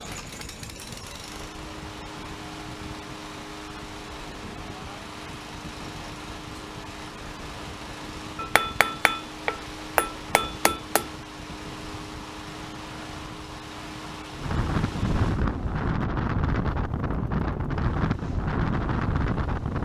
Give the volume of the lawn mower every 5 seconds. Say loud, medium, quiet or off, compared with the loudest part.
loud, loud, loud, medium.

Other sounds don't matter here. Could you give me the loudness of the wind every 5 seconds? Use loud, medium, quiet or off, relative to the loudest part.
quiet, quiet, medium, loud.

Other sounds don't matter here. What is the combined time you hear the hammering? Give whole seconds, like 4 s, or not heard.
3 s.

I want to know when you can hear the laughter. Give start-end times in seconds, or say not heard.
not heard.